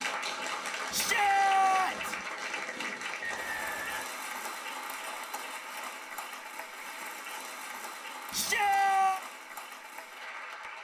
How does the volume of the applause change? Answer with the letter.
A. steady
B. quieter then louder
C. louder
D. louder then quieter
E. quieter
E.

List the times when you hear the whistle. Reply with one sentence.
The whistle can be heard from 3.2 to 4.0 s.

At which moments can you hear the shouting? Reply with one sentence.
You can hear the shouting from 0.9 to 2.1 s and from 8.3 to 9.2 s.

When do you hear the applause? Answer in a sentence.
You can hear the applause from 0.0 to 10.7 s.